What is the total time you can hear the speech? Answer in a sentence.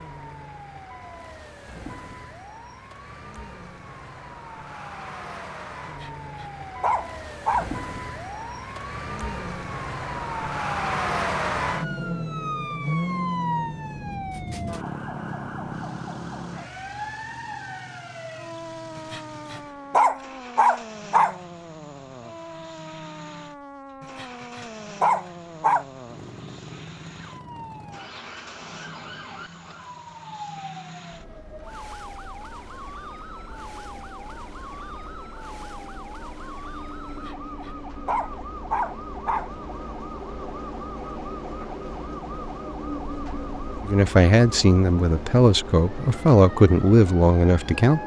You can hear the speech for 4 seconds altogether.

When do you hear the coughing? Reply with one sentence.
The coughing can't be heard in this clip.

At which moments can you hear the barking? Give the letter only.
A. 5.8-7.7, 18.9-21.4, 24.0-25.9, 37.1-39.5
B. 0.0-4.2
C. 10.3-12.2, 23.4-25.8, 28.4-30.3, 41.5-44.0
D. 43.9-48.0
A.